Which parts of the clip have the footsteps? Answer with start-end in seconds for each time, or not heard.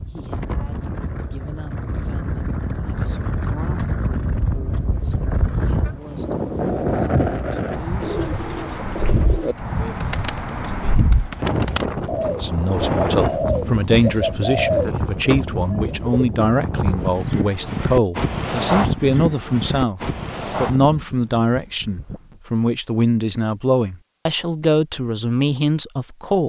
not heard.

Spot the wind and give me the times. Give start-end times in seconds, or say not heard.
0.0-22.4.